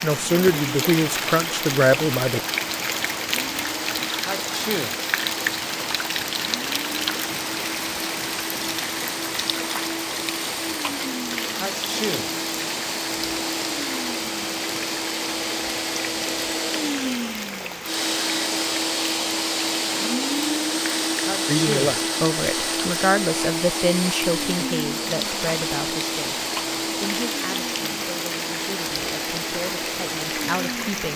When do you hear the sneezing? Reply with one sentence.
The sneezing can be heard from 4.2 to 5.0 s, from 11.6 to 12.3 s and from 21.2 to 21.9 s.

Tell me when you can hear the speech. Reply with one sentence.
The speech can be heard from 0.0 to 2.4 s and from 21.4 to 31.1 s.